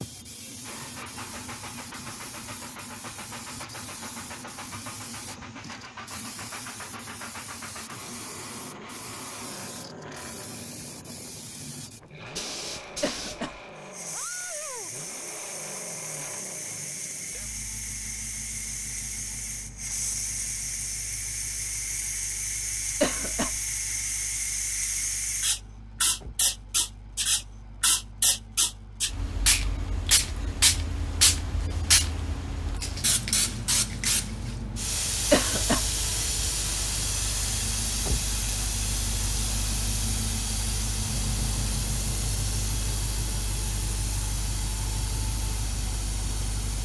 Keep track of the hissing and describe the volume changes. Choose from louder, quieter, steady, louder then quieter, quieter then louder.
louder then quieter.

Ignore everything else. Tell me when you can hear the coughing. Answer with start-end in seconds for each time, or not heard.
13.0-13.6, 23.0-23.6, 35.3-35.9.